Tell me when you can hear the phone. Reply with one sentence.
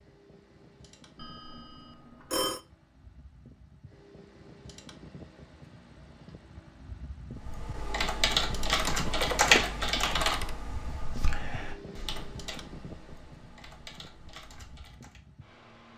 The phone can be heard from 1.1 to 2.6 s and from 8.9 to 10.5 s.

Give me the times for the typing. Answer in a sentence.
The typing can be heard from 7.4 to 15.2 s.